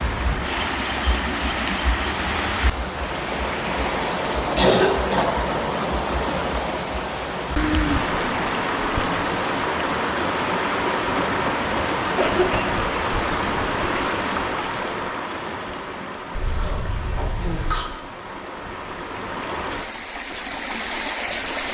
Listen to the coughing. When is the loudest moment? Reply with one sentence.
The volume of the coughing peaks at 5 seconds.